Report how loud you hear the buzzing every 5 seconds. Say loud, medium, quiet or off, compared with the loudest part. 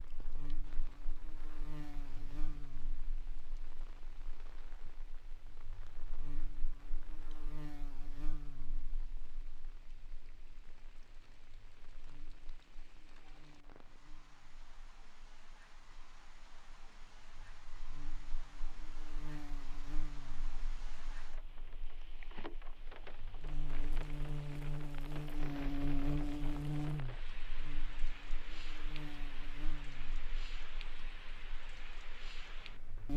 quiet, quiet, quiet, quiet, medium, loud, medium.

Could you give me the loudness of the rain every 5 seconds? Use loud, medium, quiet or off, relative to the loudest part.
medium, quiet, quiet, medium, loud, loud, loud.